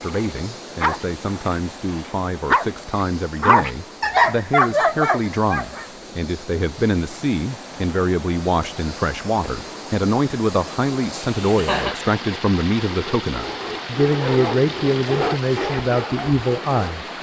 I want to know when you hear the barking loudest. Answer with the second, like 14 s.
4 s.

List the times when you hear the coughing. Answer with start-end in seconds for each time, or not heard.
11.2-11.9.